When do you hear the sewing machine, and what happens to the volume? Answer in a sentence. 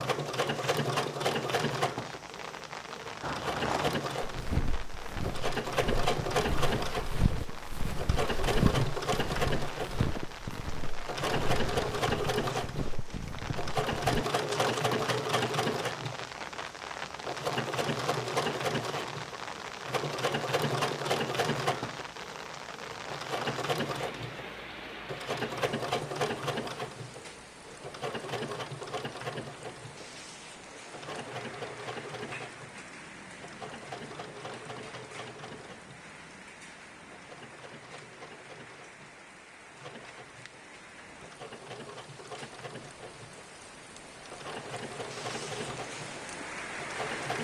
You can hear the sewing machine from 0.0 to 47.3 s, getting quieter.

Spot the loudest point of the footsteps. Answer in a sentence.
The volume of the footsteps peaks at 9 seconds.